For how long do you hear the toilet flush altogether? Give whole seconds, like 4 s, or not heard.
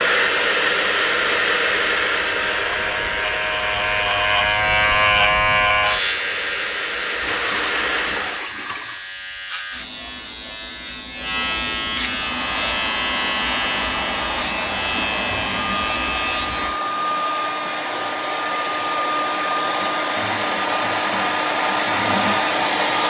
2 s.